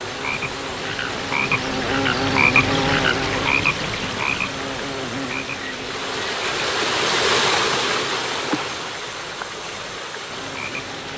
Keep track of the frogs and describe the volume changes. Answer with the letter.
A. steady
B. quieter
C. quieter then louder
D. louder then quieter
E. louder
D.